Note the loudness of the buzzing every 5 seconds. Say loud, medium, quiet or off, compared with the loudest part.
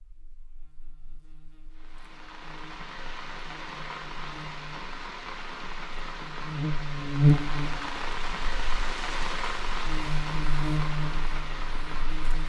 quiet, loud, medium.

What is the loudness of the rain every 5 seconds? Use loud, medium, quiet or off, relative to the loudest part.
medium, loud, loud.